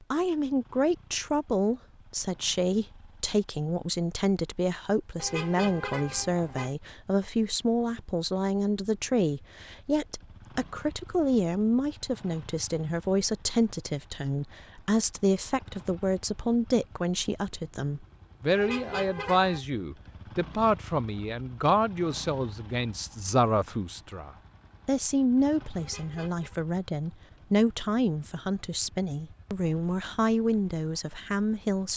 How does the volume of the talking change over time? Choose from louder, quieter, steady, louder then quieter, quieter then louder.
steady.